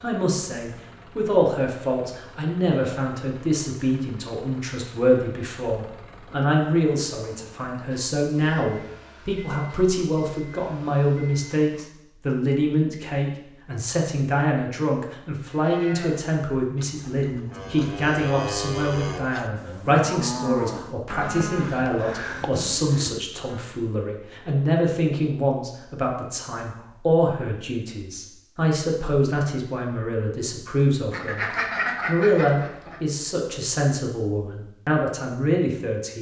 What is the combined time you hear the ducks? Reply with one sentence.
The ducks can be heard for 2 seconds in total.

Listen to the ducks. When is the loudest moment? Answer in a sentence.
The loudest moment of the ducks is at 32 seconds.